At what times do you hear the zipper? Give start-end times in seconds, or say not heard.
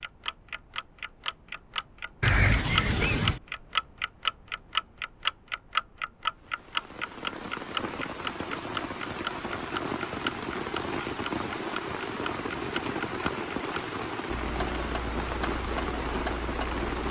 2.2-3.4.